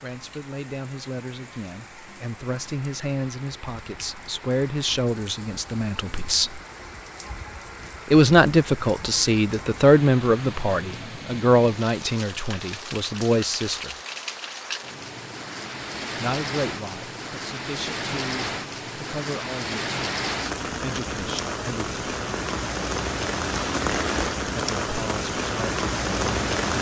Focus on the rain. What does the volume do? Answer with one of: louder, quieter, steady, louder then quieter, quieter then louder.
louder.